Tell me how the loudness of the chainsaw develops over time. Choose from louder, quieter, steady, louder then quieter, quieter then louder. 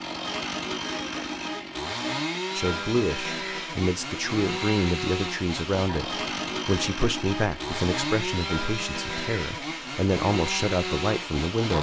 steady.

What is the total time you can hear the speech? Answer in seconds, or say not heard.
9 s.